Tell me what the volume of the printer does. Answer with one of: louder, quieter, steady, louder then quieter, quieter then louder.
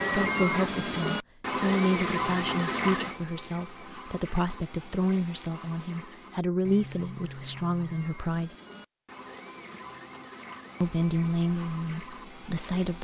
quieter.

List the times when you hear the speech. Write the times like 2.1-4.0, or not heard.
0.0-8.5, 10.8-12.9.